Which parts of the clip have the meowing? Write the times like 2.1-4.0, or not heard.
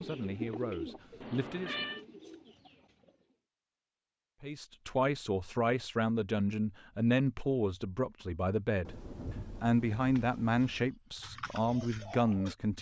1.2-2.0.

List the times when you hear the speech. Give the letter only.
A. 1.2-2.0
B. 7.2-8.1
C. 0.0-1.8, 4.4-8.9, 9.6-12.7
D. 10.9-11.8
C.